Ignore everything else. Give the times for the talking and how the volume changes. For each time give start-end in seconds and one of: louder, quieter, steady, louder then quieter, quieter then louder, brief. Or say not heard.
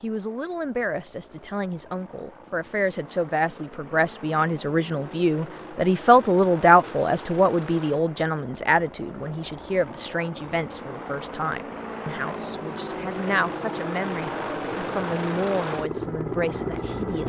0.0-17.2 louder then quieter.